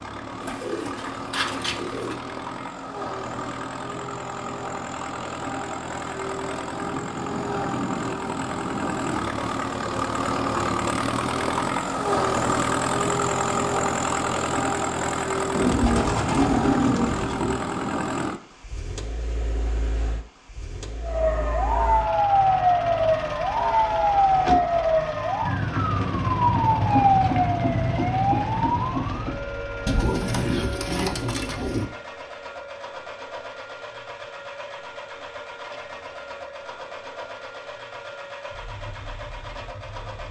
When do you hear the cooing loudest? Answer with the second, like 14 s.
17 s.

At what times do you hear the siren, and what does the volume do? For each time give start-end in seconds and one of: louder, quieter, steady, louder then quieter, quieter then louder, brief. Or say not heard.
21.0-40.2 quieter.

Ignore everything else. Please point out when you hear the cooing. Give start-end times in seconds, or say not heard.
0.4-2.2, 15.5-17.6, 29.9-31.9.